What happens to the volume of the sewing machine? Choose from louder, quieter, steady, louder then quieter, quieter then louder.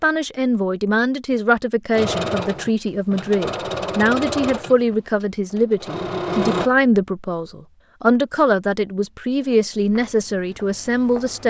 quieter then louder.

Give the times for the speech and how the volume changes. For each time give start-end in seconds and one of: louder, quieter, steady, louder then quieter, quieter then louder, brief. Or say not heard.
0.0-11.4 steady.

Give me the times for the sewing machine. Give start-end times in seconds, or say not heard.
1.9-6.7.